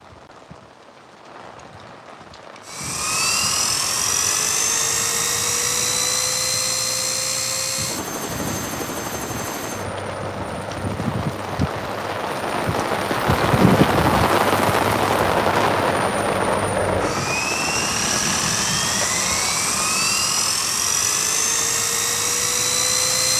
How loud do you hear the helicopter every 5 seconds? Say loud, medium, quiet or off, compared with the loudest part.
loud, loud, quiet, loud, loud.